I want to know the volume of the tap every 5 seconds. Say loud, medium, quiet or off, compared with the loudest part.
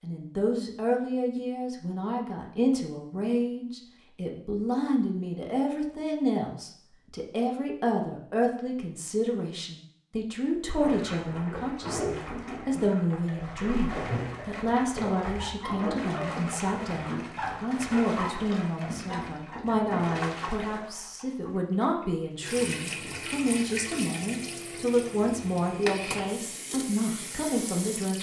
off, off, loud, loud, loud, loud.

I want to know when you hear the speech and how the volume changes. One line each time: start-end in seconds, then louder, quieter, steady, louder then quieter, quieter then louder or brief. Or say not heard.
0.0-28.1 steady.